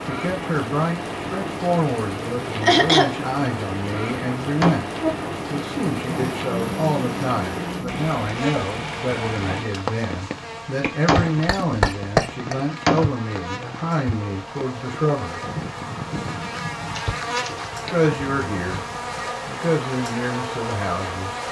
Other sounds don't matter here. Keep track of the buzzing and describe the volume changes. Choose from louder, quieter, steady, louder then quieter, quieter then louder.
quieter then louder.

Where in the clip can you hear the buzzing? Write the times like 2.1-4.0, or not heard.
4.5-21.4.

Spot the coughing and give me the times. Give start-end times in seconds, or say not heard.
2.6-3.2, 10.8-12.6, 16.9-17.9.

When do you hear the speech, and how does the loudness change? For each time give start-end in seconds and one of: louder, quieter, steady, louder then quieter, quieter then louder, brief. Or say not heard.
0.0-15.5 steady
17.9-18.9 brief
19.4-21.4 brief.